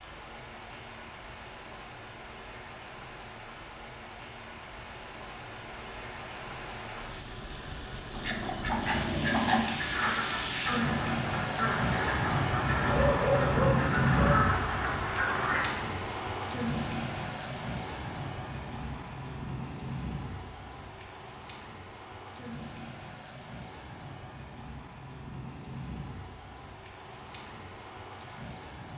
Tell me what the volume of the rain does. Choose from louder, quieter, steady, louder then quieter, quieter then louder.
louder then quieter.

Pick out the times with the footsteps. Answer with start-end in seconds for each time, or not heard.
not heard.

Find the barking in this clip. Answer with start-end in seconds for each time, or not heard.
12.8-14.5.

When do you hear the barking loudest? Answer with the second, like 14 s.
13 s.